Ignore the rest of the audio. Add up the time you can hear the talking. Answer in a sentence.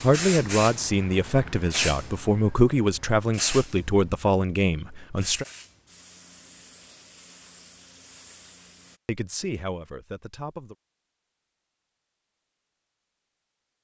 You can hear the talking for 7 seconds altogether.